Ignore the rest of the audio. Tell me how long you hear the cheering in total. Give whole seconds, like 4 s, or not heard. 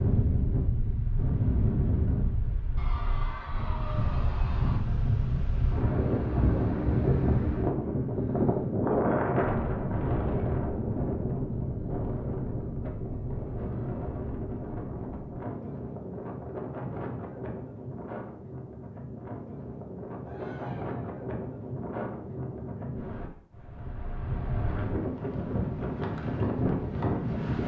3 s.